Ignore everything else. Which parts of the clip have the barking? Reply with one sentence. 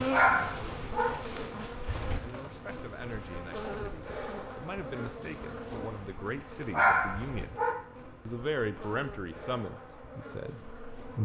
You can hear the barking from 0.1 to 1.1 s and from 6.7 to 7.8 s.